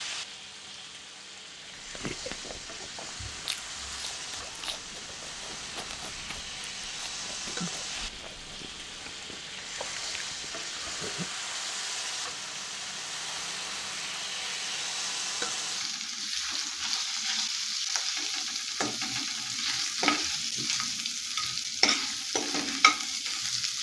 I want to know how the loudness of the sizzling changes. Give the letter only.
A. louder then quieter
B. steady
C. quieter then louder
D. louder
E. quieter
D.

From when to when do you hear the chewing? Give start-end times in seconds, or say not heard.
1.6-11.7.